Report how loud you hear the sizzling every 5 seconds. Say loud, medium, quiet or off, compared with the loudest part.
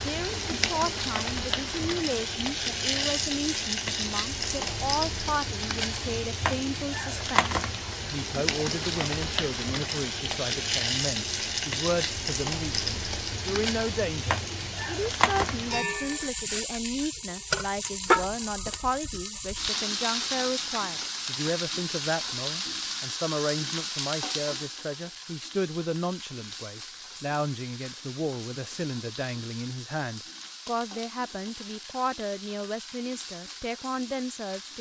loud, loud, loud, loud, loud, quiet, quiet.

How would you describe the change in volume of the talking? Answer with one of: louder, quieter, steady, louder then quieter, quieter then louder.
steady.